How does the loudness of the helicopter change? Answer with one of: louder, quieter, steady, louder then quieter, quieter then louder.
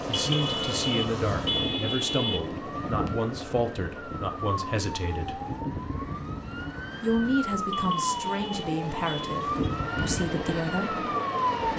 quieter then louder.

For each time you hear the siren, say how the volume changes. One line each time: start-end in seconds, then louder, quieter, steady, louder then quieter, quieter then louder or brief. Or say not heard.
0.1-11.7 louder.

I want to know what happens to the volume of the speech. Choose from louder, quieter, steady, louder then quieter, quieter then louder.
steady.